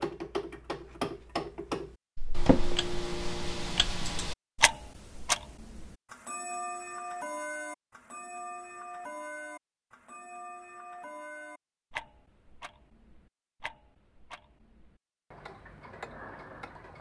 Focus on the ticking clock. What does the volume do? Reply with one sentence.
The loudness of the ticking clock goes down.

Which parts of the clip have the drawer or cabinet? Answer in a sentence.
You can hear the drawer or cabinet from 2.1 to 2.8 s.